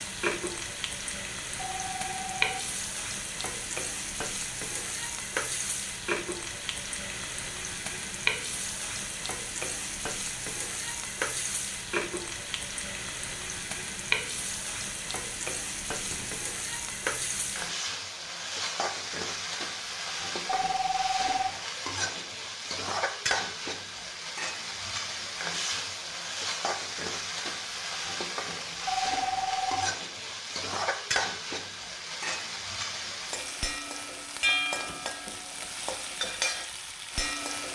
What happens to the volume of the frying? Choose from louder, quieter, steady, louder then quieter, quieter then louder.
steady.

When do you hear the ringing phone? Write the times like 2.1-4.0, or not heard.
1.8-2.5, 20.4-21.5, 28.9-29.9.